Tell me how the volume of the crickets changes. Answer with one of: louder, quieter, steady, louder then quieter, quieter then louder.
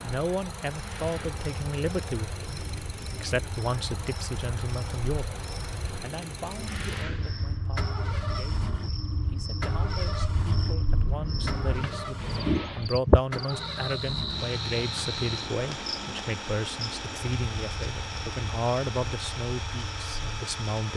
louder then quieter.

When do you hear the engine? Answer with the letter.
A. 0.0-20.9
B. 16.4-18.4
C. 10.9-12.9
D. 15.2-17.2
A.